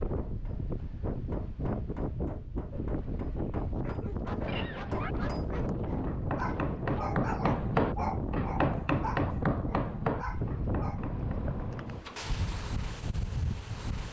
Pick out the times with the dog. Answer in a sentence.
The dog can be heard from 2.7 to 11.0 s.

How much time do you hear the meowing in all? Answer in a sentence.
The meowing can be heard for 2 seconds in total.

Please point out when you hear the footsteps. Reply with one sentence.
You can't hear the footsteps here.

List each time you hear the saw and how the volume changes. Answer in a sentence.
You can't hear the saw here.